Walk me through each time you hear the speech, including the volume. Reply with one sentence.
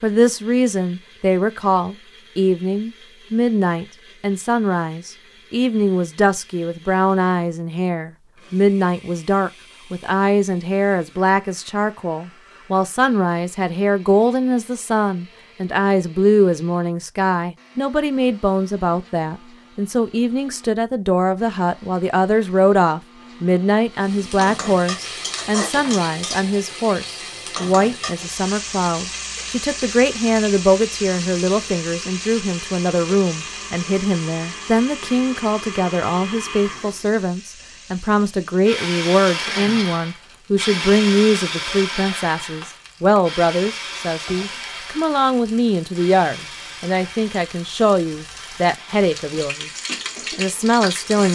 You can hear the speech from 0.0 to 49.7 s, at a steady volume; and briefly from 50.4 to 51.2 s.